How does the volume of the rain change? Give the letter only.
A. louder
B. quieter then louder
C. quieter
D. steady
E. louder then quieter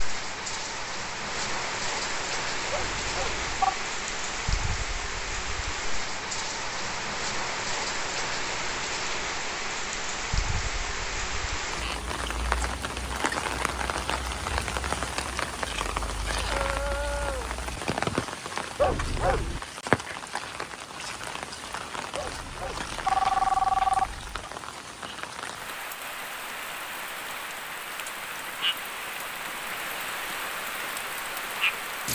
D.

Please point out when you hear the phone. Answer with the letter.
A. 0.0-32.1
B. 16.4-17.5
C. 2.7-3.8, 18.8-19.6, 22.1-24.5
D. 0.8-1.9
C.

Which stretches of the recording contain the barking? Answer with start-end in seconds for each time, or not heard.
16.4-17.5.